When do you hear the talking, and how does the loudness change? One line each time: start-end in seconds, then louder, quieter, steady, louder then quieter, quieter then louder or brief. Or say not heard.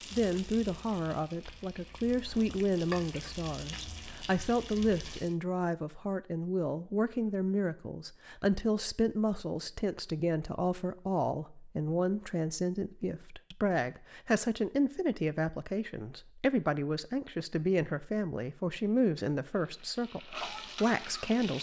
0.1-21.5 steady.